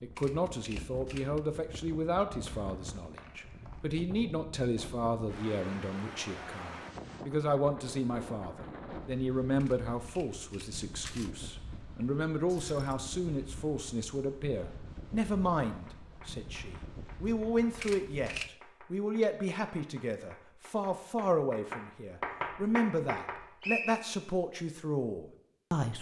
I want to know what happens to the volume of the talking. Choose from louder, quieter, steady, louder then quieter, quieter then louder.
steady.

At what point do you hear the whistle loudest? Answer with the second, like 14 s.
24 s.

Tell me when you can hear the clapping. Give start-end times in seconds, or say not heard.
15.7-23.6.